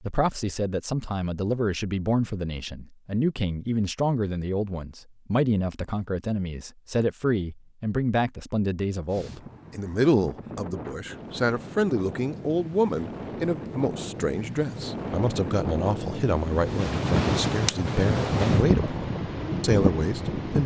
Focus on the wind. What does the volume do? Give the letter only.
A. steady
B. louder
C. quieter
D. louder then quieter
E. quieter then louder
B.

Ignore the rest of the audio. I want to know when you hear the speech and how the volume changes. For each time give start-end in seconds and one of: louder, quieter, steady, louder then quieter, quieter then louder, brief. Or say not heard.
0.0-20.6 steady.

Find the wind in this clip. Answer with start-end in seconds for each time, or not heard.
9.1-20.6.